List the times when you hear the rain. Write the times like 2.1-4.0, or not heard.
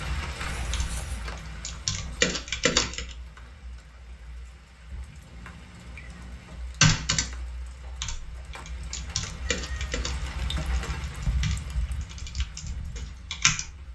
0.0-13.9.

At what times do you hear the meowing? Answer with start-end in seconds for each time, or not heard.
0.5-1.2, 5.2-6.6, 9.5-10.0.